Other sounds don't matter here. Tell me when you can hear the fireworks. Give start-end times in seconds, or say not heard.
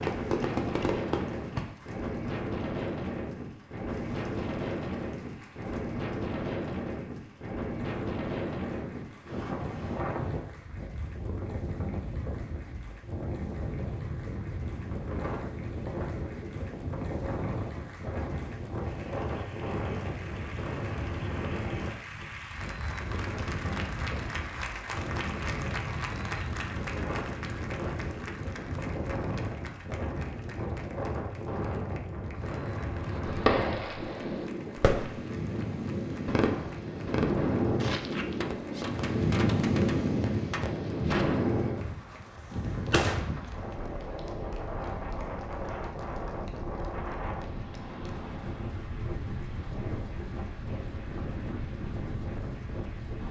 0.0-1.7, 33.0-35.4, 36.2-43.3.